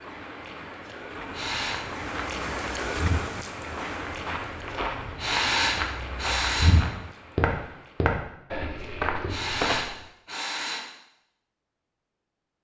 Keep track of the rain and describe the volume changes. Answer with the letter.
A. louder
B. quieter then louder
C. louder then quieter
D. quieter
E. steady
C.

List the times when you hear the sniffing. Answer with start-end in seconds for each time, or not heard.
0.8-1.8, 4.7-6.8, 8.8-10.8.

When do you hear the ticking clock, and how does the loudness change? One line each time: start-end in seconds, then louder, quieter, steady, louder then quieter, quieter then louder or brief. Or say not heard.
not heard.